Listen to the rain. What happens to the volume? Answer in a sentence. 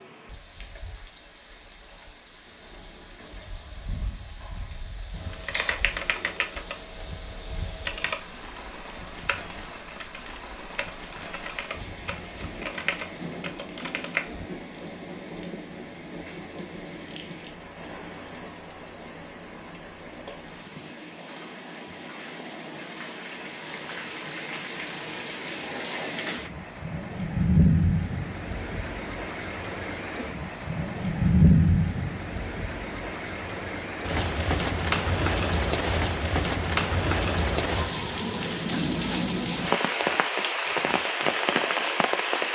The loudness of the rain goes up.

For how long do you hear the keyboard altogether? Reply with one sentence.
The keyboard can be heard for 9 seconds in total.